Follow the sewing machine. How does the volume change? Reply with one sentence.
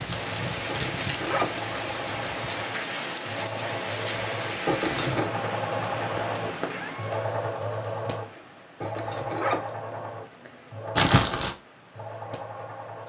The loudness of the sewing machine goes up, then down.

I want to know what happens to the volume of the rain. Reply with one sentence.
The volume of the rain goes down.